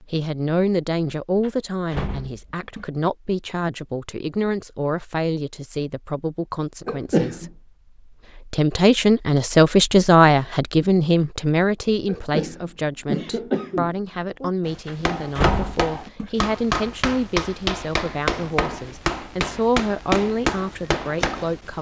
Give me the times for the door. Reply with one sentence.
You can hear the door from 1.4 to 2.9 s and from 14.8 to 16.3 s.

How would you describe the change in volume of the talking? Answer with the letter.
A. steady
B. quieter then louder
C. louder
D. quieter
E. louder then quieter
E.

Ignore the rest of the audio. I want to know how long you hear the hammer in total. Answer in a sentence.
The hammer can be heard for 7 seconds in total.